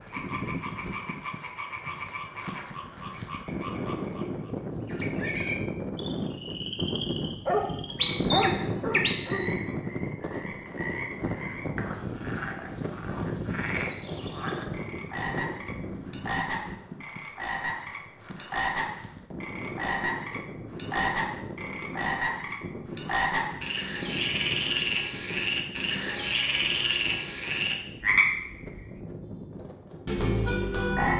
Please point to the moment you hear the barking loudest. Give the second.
8 s.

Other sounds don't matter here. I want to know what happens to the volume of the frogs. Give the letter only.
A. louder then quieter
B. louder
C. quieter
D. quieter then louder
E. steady
B.